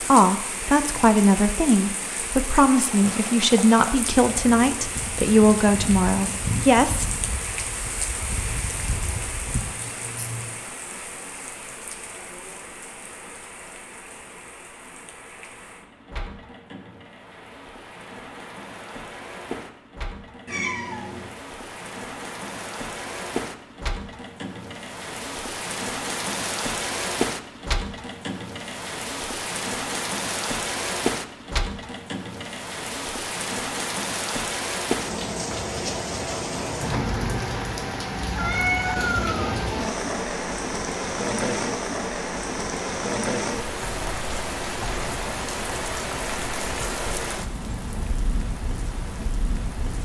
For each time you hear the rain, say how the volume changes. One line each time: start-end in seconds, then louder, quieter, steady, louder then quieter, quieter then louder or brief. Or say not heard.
0.0-49.9 quieter then louder.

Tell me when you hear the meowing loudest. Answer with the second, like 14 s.
39 s.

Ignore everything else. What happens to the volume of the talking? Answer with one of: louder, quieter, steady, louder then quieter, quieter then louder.
steady.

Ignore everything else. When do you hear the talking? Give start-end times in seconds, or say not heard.
0.1-7.0.